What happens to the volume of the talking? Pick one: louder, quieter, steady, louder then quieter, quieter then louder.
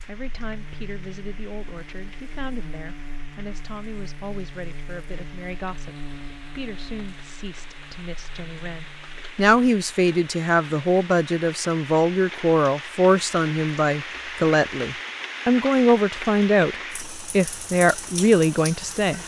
louder.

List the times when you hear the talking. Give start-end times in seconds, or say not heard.
0.1-19.2.